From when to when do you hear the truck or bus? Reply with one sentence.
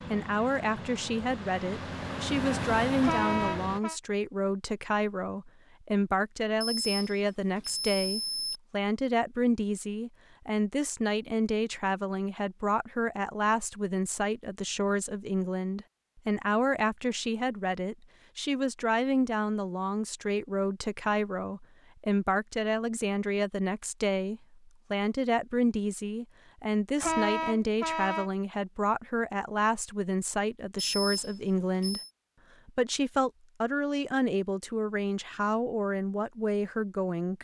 The truck or bus can be heard from 0.0 to 3.8 s.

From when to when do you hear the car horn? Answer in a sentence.
You can hear the car horn from 3.0 to 4.0 s and from 27.0 to 28.3 s.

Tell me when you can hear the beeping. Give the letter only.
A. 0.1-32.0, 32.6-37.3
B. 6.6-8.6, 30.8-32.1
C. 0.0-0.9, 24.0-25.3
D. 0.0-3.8
B.